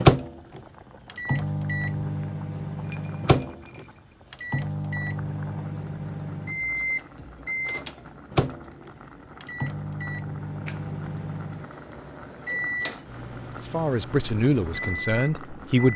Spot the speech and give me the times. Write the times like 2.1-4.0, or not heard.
13.6-15.9.